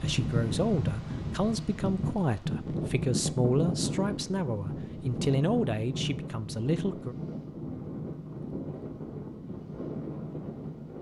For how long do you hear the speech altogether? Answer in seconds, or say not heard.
7 s.